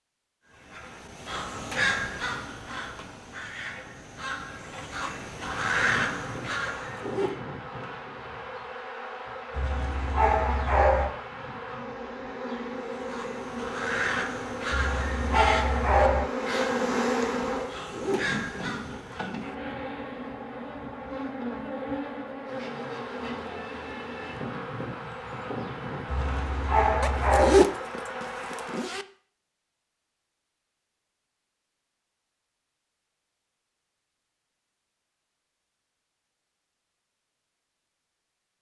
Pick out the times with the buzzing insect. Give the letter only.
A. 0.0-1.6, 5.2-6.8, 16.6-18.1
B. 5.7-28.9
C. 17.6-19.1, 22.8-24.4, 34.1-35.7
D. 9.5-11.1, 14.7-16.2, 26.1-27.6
B.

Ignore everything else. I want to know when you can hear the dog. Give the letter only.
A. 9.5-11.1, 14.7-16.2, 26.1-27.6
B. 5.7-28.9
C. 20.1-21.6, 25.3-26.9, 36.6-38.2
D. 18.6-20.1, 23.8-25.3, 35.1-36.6
A.